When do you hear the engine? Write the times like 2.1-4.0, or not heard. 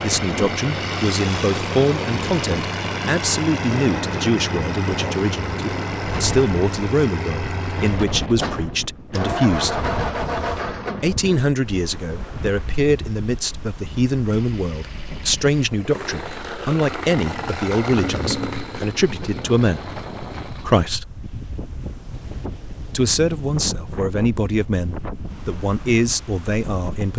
0.0-11.4, 14.2-20.9.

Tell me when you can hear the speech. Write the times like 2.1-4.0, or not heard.
0.0-9.8, 11.0-21.1, 22.9-27.1.